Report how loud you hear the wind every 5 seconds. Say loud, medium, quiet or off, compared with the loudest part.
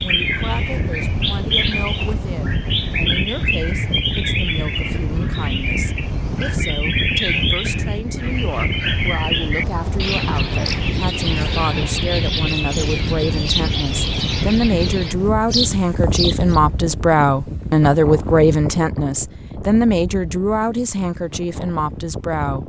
loud, loud, loud, loud, medium.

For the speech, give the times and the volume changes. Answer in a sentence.
The speech can be heard from 0.0 to 22.6 s, getting louder.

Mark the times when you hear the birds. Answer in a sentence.
You can hear the birds from 0.0 to 16.6 s.